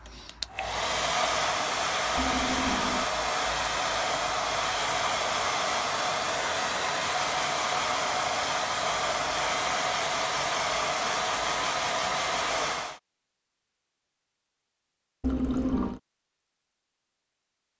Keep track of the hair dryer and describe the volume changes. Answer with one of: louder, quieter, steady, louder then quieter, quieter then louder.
steady.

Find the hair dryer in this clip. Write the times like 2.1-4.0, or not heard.
0.0-13.0.